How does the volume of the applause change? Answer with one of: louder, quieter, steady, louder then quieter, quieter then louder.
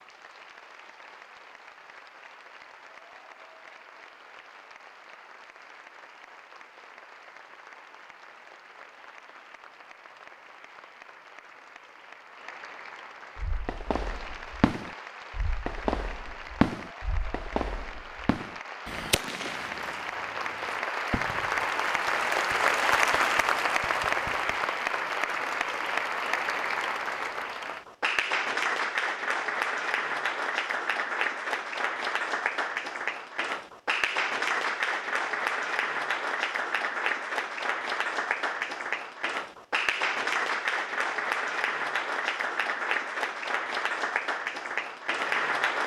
louder.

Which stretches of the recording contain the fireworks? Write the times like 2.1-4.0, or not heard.
13.3-24.6.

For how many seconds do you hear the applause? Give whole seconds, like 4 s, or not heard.
46 s.